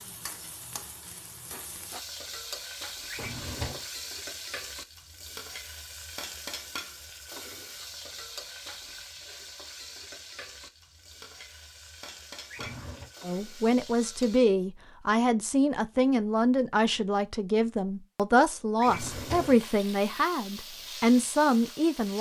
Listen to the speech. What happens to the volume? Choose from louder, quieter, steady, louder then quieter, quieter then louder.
steady.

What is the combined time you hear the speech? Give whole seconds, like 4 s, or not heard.
9 s.